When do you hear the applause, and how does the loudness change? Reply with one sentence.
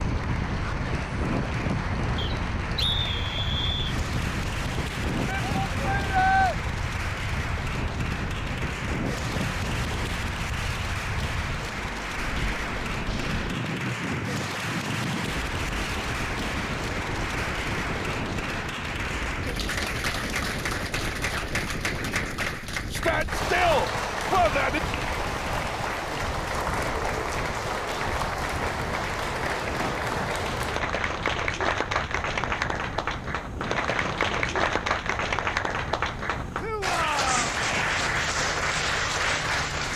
The applause can be heard from 0.0 to 39.9 s, getting louder.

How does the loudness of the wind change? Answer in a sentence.
The volume of the wind goes down.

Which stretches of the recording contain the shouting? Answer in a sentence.
The shouting can be heard from 5.2 to 6.5 s, from 22.9 to 24.8 s and from 36.6 to 37.5 s.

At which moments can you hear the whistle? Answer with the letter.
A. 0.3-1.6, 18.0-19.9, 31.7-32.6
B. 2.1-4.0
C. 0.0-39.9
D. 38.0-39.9
B.